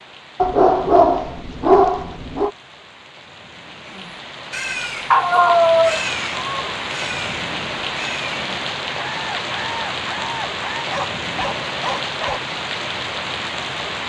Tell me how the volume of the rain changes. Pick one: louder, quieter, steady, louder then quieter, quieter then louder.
louder.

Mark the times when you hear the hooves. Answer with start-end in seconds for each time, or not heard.
not heard.